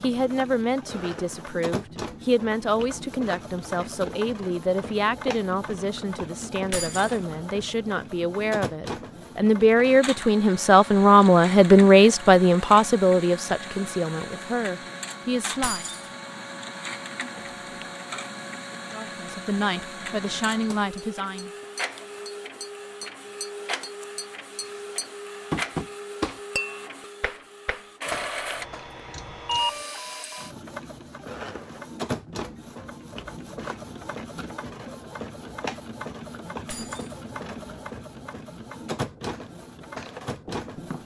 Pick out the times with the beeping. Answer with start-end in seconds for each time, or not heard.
17.4-17.9, 28.1-29.8.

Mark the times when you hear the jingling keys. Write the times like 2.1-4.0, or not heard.
6.7-7.2, 15.6-16.1, 36.6-37.1.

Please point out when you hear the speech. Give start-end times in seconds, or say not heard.
0.0-15.8, 18.9-21.5.